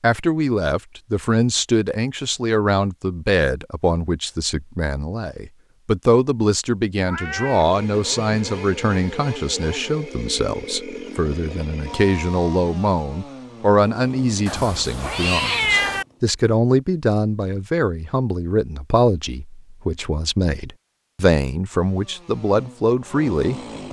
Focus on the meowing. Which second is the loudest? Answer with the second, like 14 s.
16 s.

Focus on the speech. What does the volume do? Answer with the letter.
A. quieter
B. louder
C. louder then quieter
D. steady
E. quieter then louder
D.